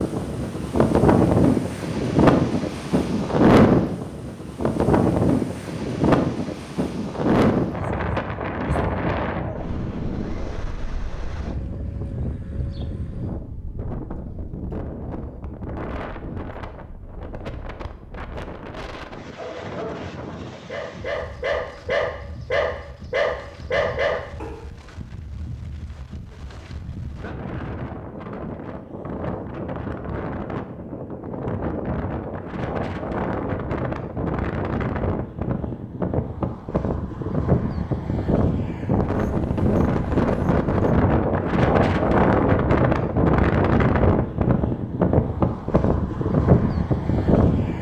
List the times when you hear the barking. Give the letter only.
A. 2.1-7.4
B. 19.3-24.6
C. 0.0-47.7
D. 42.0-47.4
B.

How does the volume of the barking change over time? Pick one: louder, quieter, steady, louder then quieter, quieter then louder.
louder.